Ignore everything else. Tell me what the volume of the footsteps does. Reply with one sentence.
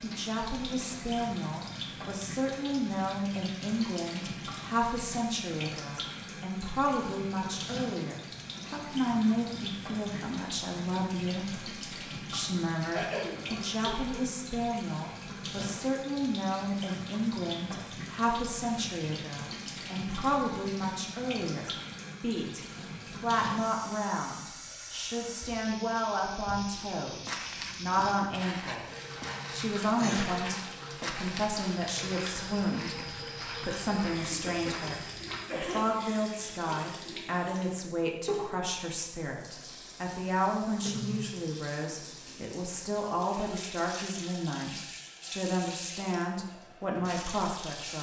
The volume of the footsteps stays about the same.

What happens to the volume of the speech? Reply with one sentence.
The volume of the speech stays about the same.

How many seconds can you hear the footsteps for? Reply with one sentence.
The footsteps can be heard for 8 seconds in total.